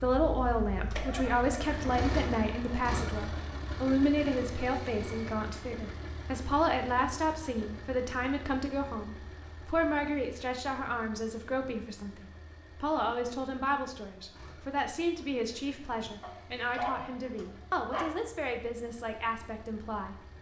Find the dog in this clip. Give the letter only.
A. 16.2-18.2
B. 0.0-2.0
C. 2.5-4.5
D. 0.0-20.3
A.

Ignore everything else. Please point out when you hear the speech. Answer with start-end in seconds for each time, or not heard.
0.0-20.3.